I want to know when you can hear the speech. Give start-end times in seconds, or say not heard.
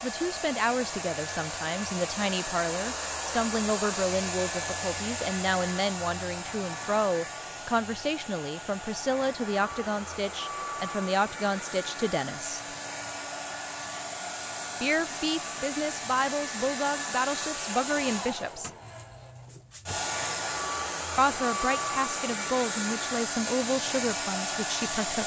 0.0-12.6, 14.8-18.7, 21.1-25.2.